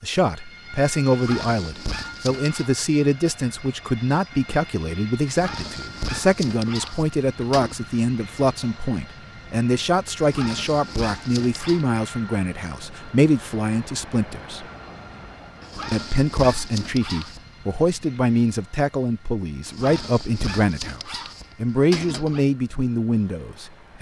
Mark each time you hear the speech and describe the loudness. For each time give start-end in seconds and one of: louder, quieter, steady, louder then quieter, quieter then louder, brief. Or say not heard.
0.0-14.7 steady
15.9-23.9 steady.